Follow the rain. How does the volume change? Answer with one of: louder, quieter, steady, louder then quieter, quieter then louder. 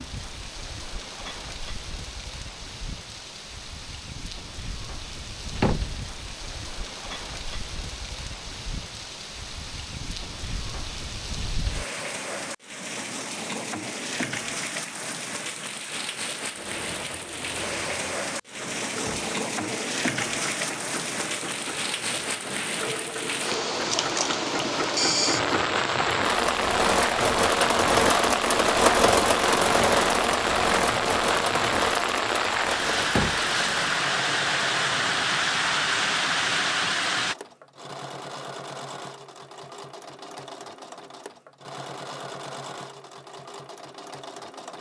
louder.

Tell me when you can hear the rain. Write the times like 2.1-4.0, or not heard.
0.0-37.4.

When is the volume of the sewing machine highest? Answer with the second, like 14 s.
29 s.